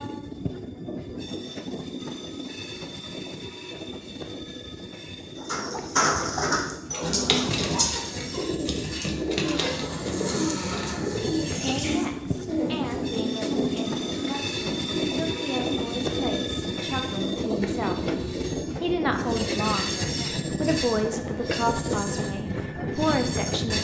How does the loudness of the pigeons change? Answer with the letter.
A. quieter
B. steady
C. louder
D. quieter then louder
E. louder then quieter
A.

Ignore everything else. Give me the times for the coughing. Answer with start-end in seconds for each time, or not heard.
not heard.